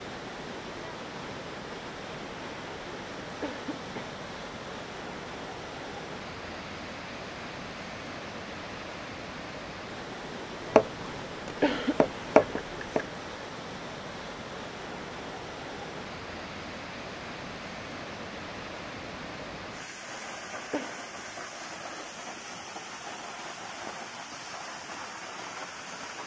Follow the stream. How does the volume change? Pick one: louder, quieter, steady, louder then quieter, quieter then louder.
steady.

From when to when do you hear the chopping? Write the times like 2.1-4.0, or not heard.
10.7-13.1.